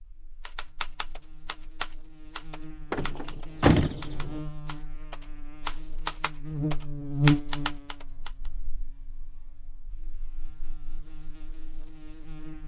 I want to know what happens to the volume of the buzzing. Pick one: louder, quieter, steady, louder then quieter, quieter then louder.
louder then quieter.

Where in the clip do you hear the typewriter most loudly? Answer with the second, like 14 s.
7 s.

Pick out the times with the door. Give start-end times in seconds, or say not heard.
2.9-4.4.